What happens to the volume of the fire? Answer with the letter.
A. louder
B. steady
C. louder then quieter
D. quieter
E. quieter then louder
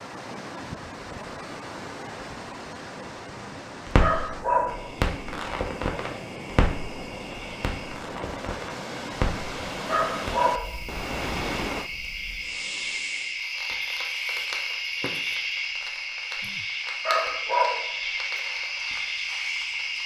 D.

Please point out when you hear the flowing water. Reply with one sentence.
You can hear the flowing water from 0.0 to 11.9 s.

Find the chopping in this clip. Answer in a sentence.
The chopping can't be heard in this clip.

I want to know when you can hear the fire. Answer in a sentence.
You can hear the fire from 3.9 to 20.0 s.